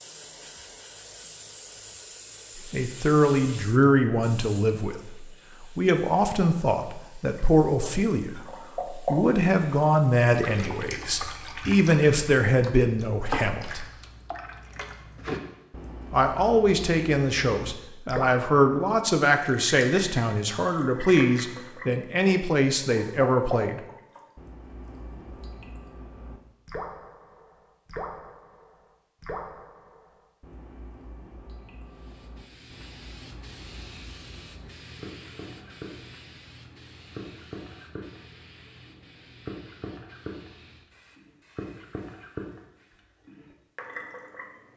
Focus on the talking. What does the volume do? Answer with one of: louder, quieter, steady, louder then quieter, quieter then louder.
steady.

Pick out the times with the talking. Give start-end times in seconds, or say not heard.
2.7-13.8, 16.1-23.8.